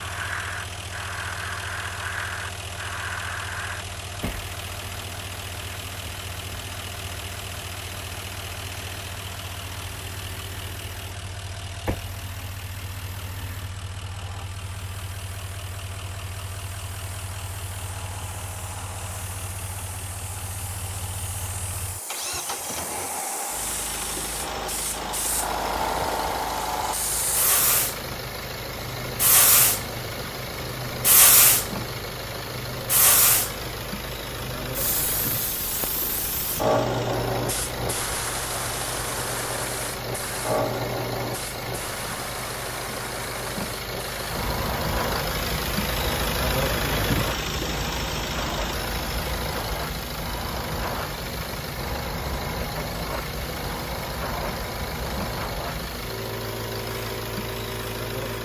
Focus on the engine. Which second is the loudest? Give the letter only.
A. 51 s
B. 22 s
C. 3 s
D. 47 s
D.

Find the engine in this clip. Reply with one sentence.
You can hear the engine from 0.0 to 58.4 s.